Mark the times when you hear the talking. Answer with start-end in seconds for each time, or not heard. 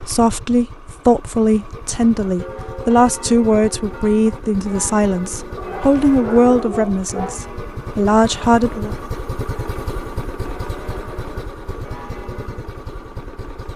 0.0-8.9.